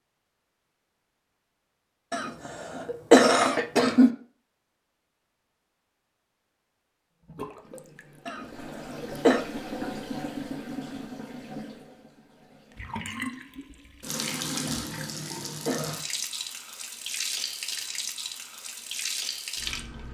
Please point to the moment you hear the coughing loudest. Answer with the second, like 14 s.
3 s.